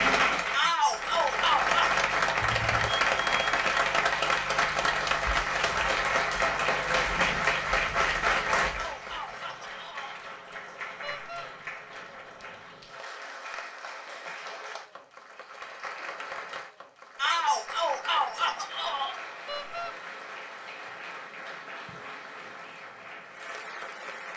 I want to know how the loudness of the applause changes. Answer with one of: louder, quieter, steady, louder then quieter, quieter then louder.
quieter.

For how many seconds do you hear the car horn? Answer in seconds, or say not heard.
2 s.